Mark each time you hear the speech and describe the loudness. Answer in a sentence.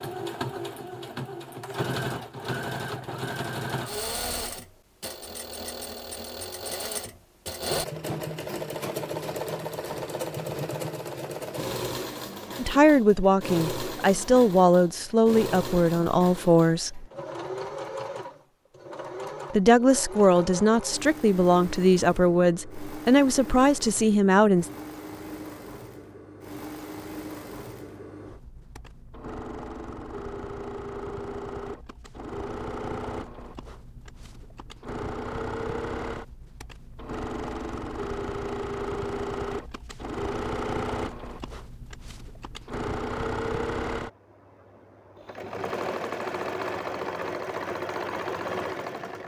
You can hear the speech from 12.6 to 17.1 s, at a steady volume; and from 19.5 to 24.7 s, at a steady volume.